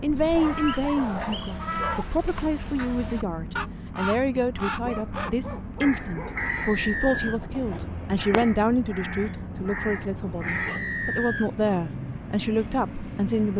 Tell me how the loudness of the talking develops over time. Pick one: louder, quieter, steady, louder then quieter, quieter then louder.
steady.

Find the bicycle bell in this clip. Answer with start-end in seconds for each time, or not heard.
not heard.